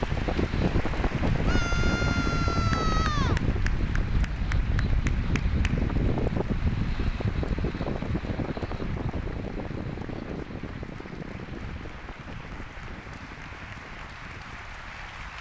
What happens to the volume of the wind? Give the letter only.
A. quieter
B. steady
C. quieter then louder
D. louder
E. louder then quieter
A.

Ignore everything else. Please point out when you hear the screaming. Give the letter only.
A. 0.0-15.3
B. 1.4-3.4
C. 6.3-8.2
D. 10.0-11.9
B.